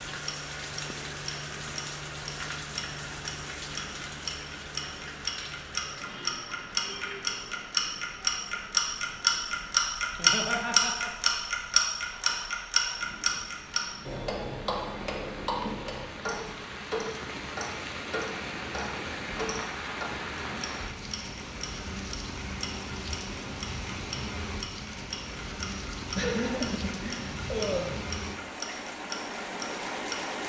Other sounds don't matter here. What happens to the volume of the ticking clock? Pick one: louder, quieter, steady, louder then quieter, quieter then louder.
louder then quieter.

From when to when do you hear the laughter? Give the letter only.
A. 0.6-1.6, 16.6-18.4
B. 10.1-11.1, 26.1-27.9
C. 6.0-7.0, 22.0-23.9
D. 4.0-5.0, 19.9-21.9
B.